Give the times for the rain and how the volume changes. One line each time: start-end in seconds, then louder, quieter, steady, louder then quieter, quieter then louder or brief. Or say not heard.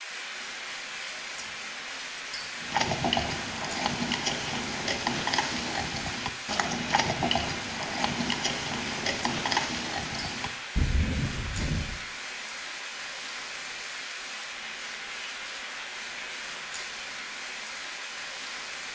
0.0-18.9 steady.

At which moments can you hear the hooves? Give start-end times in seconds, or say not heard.
2.5-12.0.